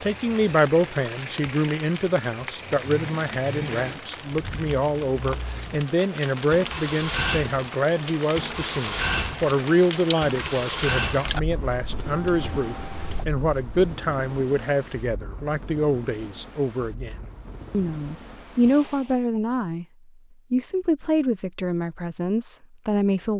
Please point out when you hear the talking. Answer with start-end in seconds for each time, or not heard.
0.0-19.9, 20.5-23.3.